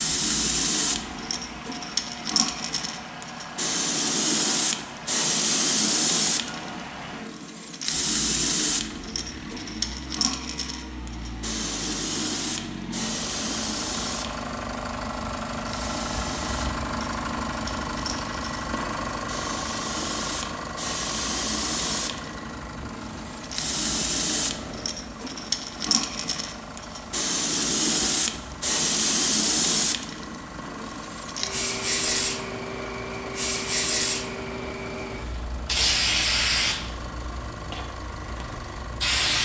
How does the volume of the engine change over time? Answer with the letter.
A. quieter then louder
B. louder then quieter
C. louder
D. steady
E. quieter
B.